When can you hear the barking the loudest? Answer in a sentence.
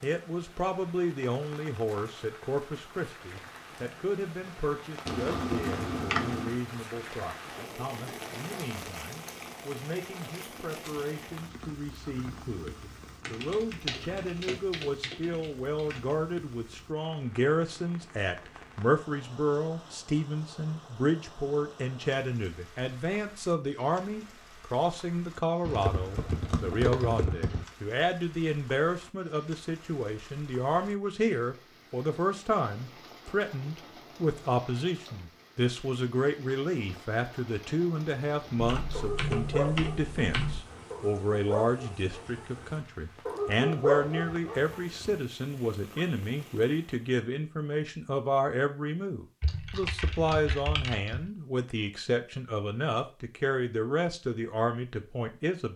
The loudest moment of the barking is at 44 seconds.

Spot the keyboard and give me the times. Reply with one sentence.
You can hear the keyboard from 5.0 to 6.6 s, from 13.2 to 16.1 s, from 25.6 to 27.6 s, from 38.6 to 40.6 s and from 49.4 to 51.3 s.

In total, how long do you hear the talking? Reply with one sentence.
The talking can be heard for 56 seconds in total.